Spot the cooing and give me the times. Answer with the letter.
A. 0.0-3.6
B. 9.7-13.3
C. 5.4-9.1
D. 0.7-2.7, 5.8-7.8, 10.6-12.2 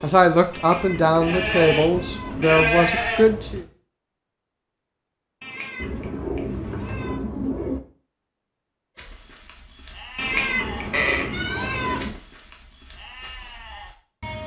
D.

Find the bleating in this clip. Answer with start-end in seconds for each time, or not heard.
0.0-3.6, 8.9-14.4.